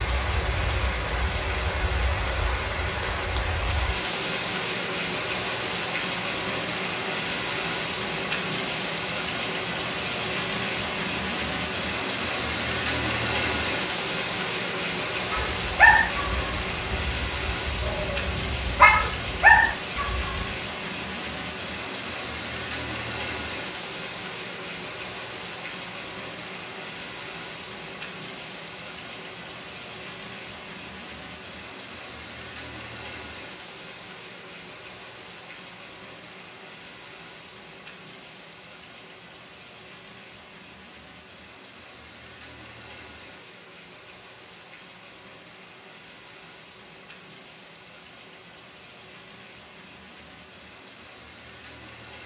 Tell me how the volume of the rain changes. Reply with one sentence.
The loudness of the rain goes down.